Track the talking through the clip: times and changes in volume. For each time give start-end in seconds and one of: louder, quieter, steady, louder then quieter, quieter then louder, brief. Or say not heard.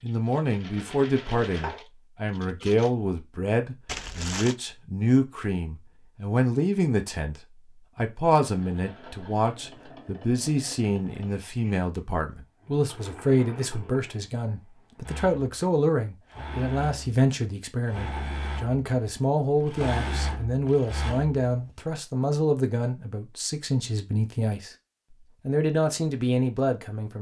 0.0-24.7 steady
25.4-27.1 brief.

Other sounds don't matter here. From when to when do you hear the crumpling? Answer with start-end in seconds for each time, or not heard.
3.9-4.5.